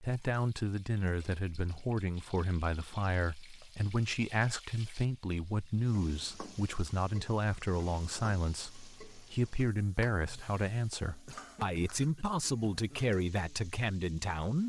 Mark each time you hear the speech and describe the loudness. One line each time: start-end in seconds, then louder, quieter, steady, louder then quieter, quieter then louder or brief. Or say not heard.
0.0-14.6 steady.